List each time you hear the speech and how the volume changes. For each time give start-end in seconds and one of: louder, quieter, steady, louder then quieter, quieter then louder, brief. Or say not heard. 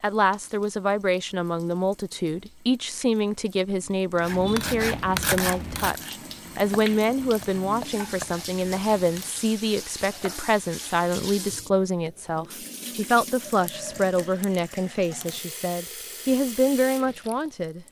0.0-17.8 steady.